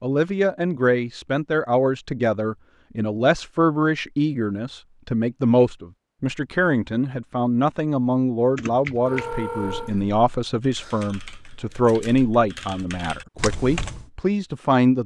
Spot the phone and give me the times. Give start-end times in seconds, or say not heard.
9.1-9.9.